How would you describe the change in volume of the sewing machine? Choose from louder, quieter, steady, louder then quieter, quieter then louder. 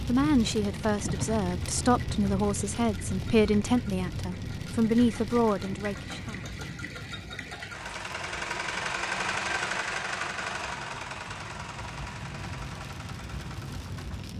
louder then quieter.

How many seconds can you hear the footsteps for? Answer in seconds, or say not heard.
not heard.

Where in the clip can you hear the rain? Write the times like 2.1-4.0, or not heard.
0.0-14.3.